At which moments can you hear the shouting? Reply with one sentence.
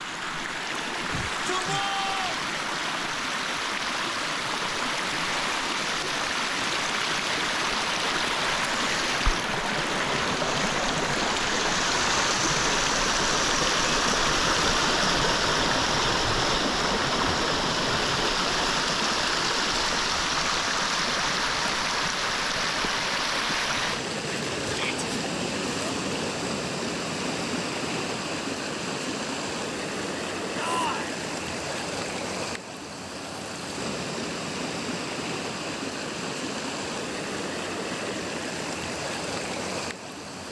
The shouting can be heard from 1.1 to 2.5 s, from 24.6 to 25.1 s and from 30.6 to 31.1 s.